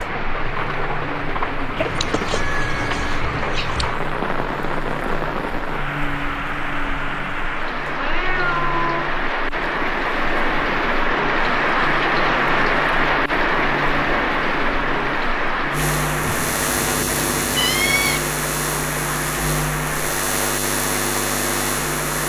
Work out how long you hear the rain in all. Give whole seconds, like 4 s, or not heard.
22 s.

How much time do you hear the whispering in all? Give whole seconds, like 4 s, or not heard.
not heard.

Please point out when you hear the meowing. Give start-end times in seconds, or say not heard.
1.8-4.0, 8.0-9.1, 16.1-18.2.